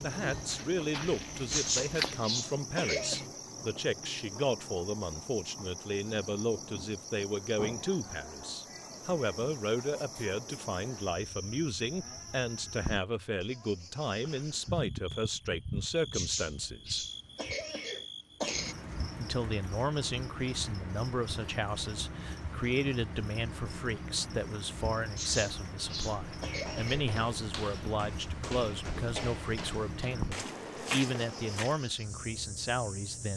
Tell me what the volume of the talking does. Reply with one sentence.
The loudness of the talking stays about the same.